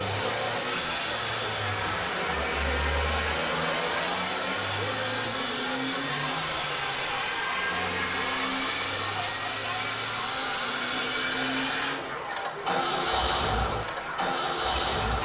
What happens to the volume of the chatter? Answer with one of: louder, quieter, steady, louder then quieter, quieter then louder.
steady.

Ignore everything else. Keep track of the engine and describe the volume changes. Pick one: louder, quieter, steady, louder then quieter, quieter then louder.
steady.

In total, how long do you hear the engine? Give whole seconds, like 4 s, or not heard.
15 s.